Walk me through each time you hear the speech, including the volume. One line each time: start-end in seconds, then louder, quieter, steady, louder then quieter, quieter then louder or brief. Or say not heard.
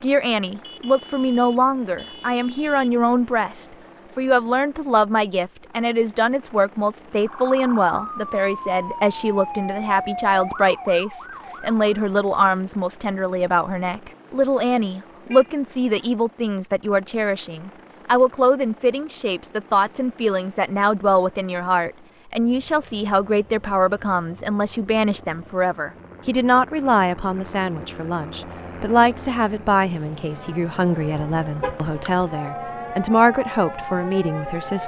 0.0-34.8 steady.